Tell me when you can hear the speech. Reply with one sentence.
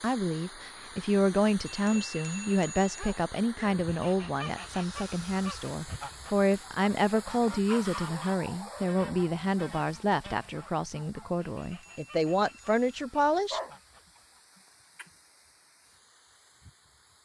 The speech can be heard from 0.0 to 13.6 s.